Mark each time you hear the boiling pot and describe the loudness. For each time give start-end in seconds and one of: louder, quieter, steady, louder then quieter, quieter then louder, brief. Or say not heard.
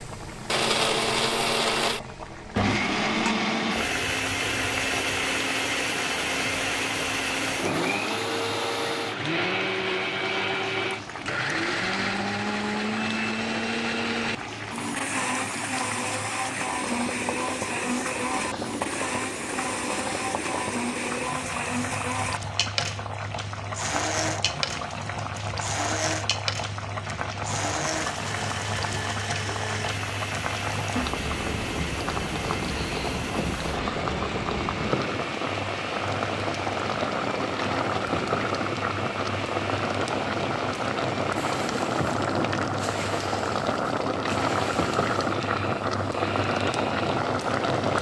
0.0-47.9 louder.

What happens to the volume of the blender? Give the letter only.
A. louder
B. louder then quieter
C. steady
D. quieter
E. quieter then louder
D.